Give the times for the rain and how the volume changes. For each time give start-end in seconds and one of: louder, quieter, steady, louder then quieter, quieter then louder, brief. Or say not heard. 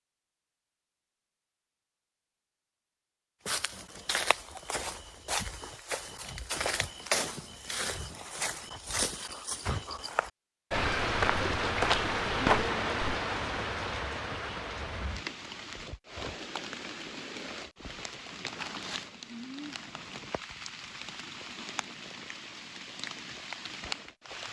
10.7-24.4 quieter.